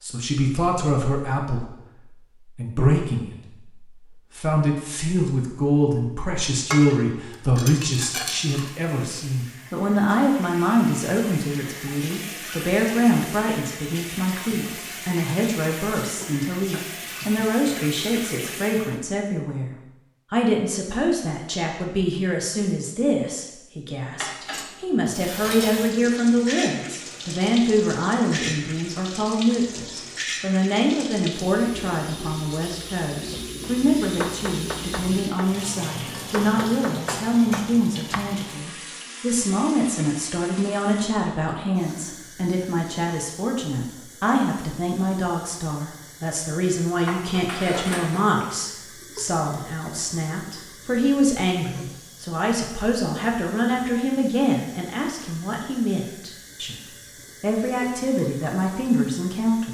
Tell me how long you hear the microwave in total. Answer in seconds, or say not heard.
not heard.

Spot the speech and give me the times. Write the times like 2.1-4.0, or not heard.
0.0-56.8, 57.4-59.6.